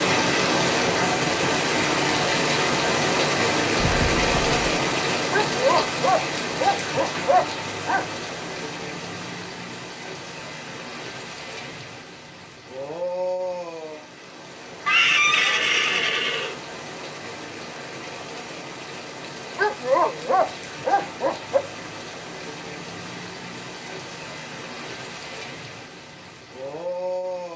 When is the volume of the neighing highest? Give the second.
15 s.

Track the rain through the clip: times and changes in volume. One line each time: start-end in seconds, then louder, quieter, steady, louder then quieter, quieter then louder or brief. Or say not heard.
0.0-27.5 quieter.